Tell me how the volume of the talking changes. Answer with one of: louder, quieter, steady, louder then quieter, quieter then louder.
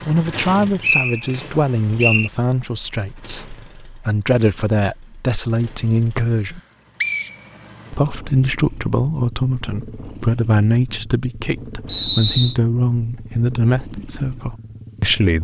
steady.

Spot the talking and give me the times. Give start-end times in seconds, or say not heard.
0.1-6.6, 7.9-15.4.